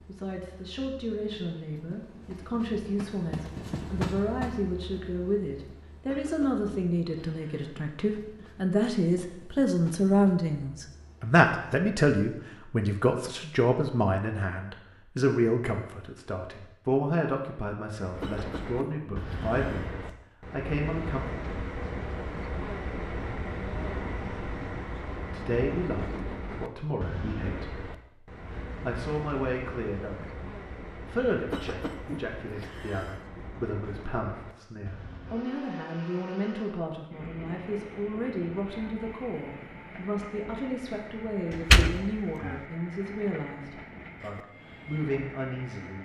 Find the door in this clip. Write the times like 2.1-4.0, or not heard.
41.5-42.6.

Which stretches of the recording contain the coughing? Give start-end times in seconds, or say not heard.
6.0-7.8, 18.2-19.9, 31.5-33.2.